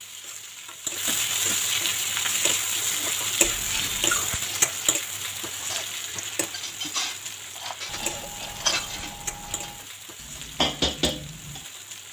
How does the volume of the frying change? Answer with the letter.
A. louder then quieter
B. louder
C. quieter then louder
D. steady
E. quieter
E.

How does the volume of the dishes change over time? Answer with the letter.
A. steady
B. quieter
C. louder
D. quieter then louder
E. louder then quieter
C.